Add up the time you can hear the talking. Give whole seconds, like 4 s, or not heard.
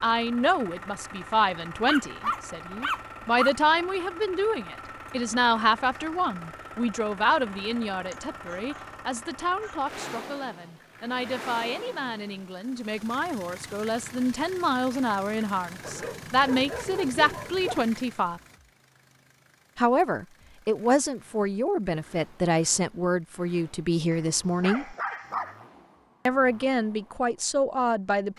26 s.